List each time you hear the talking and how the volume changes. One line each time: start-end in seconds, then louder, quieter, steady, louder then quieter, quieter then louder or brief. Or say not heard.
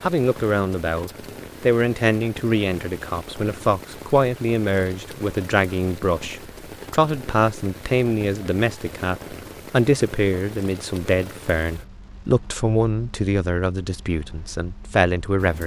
0.0-15.6 steady.